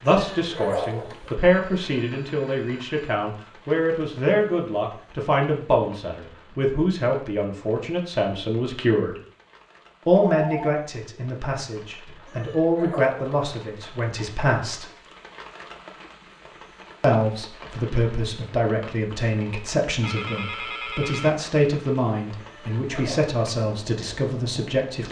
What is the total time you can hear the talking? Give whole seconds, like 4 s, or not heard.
22 s.